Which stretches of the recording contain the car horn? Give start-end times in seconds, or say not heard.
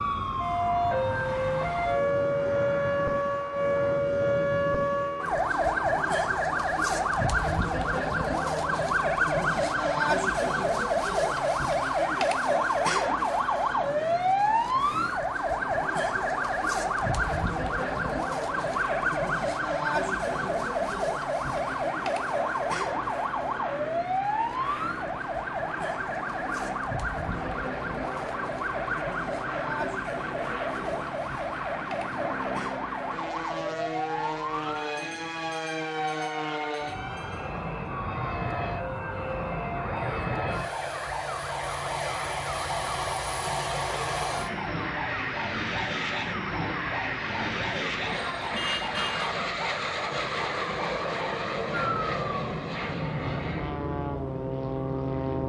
48.5-49.3.